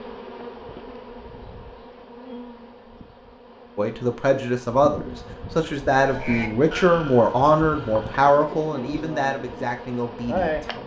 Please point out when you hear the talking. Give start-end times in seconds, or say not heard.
3.8-10.8.